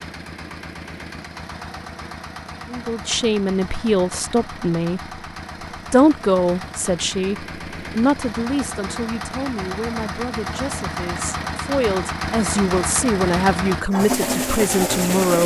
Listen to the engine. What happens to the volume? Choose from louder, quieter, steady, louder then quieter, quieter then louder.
louder.